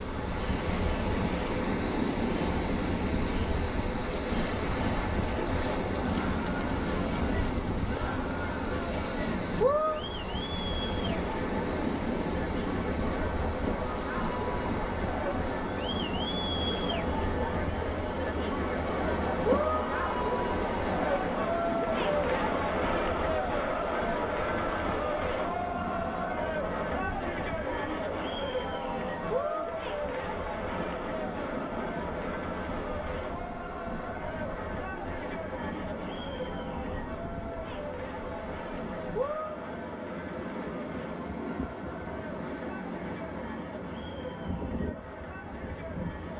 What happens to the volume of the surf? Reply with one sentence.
The loudness of the surf goes down.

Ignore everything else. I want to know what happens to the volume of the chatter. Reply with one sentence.
The volume of the chatter goes up, then down.